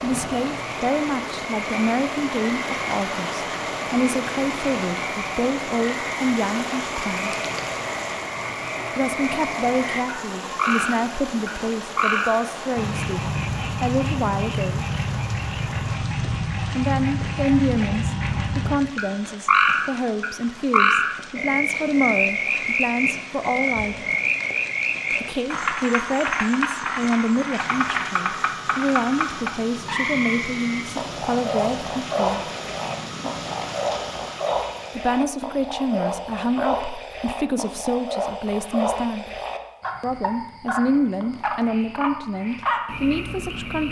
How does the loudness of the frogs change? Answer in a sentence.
The loudness of the frogs goes up, then down.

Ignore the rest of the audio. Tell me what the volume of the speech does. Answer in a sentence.
The volume of the speech stays about the same.